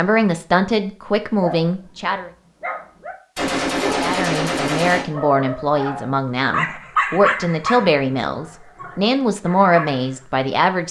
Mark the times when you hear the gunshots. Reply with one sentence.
You can hear the gunshots from 3.4 to 5.0 s.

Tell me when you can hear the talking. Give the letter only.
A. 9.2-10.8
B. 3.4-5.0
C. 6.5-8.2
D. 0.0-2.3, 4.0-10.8
D.